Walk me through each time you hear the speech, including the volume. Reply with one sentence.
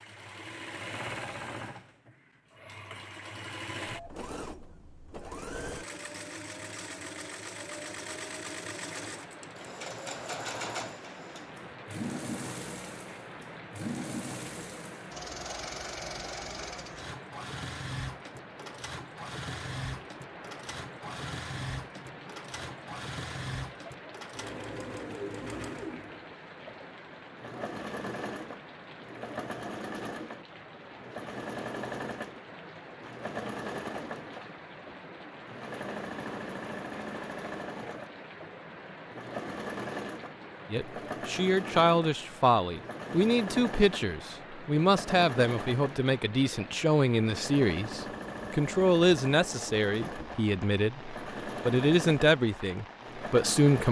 The speech can be heard from 40.7 to 53.8 s, at a steady volume.